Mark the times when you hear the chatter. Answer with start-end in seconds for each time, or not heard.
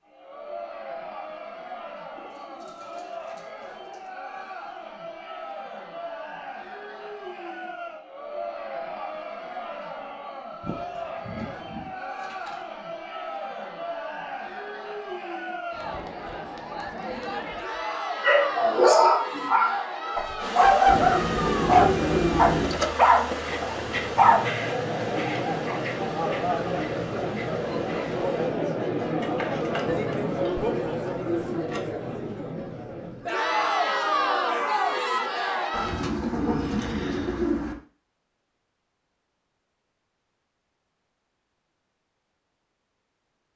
0.0-36.1.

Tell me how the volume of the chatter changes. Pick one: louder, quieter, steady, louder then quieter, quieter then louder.
louder.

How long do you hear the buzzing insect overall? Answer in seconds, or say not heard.
8 s.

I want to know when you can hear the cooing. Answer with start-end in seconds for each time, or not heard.
2.1-4.2, 10.6-12.6, 20.9-22.9, 29.2-31.9, 35.7-37.8.